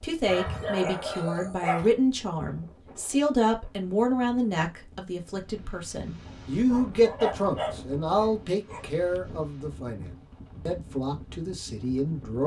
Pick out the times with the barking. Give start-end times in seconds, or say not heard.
0.2-1.9, 6.2-8.8.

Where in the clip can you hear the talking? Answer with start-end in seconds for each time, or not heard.
0.0-12.4.